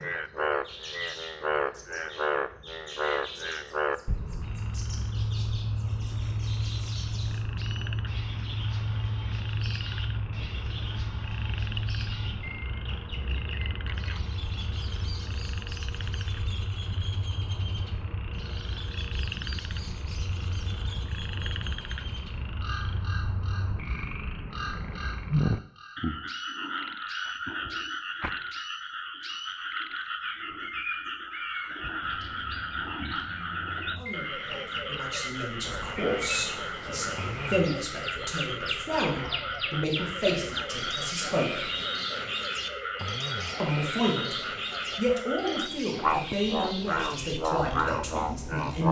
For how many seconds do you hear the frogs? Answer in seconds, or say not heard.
49 s.